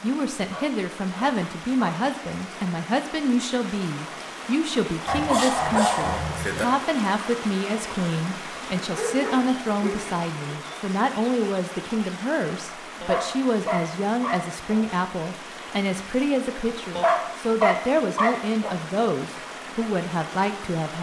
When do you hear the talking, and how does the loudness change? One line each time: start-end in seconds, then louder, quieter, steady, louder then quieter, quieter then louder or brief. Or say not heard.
0.0-20.9 steady.